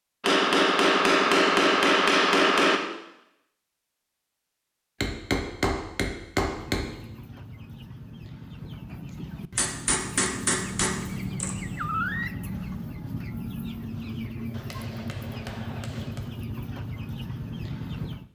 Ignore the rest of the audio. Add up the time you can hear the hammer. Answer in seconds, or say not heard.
8 s.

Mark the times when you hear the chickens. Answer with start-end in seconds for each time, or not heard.
6.4-18.2.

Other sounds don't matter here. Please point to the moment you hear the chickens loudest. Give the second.
12 s.